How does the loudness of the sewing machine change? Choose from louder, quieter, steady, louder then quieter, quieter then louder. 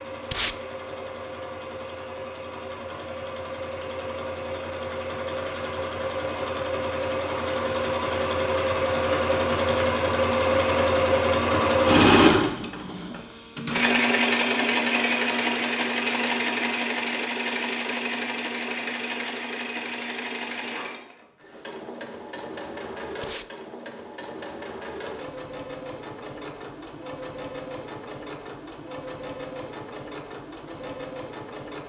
louder then quieter.